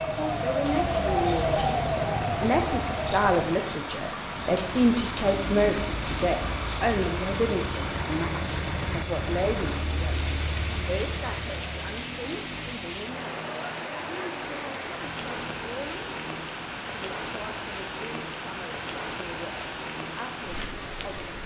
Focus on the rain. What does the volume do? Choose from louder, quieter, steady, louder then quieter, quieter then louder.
steady.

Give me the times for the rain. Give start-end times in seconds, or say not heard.
0.0-21.4.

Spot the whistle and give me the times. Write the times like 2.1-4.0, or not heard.
not heard.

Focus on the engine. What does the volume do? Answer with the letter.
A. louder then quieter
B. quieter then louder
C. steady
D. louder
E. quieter
E.